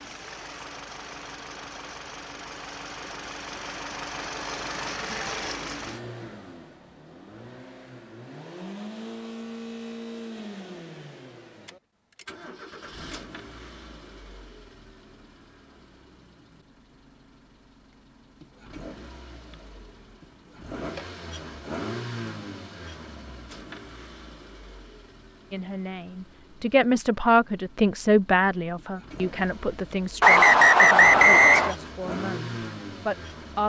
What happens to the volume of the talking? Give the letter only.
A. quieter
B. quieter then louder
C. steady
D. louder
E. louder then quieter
A.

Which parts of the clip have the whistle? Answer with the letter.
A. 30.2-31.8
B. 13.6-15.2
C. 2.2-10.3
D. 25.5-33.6
A.